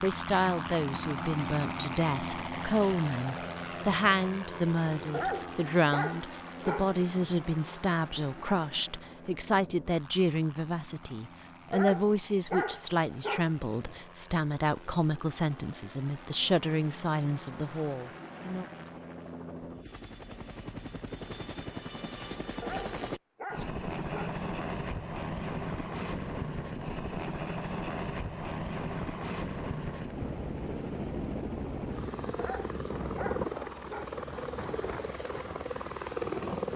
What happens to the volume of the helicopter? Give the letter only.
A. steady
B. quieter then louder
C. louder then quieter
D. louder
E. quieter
B.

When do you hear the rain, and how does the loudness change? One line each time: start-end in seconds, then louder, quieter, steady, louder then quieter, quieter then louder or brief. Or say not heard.
not heard.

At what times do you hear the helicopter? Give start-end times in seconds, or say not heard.
0.0-36.7.